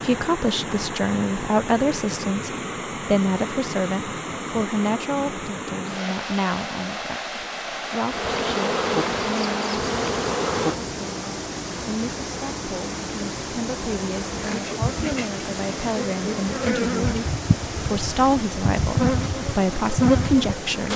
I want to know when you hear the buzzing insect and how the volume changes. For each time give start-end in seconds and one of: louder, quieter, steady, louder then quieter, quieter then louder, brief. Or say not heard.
8.1-20.9 quieter then louder.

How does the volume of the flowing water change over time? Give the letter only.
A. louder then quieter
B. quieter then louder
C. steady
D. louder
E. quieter
C.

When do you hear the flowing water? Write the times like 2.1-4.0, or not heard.
0.0-20.9.